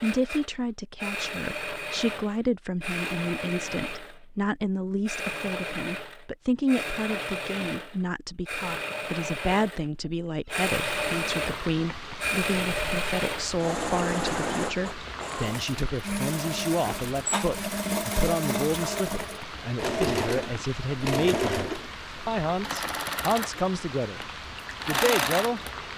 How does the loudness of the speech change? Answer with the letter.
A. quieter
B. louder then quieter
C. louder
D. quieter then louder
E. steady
E.